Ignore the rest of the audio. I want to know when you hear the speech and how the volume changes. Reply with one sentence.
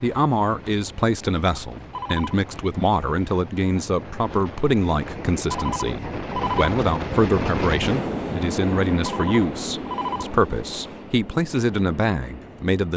The speech can be heard from 0.0 to 12.9 s, at a steady volume.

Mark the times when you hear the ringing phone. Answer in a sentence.
The ringing phone can be heard from 1.9 to 2.4 s, from 5.5 to 6.7 s and from 9.0 to 10.3 s.